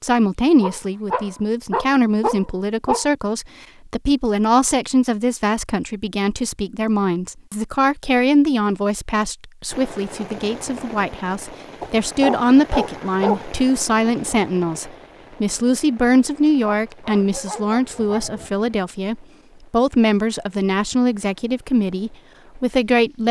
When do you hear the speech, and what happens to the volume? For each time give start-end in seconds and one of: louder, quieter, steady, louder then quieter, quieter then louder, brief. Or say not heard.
0.0-23.2 steady.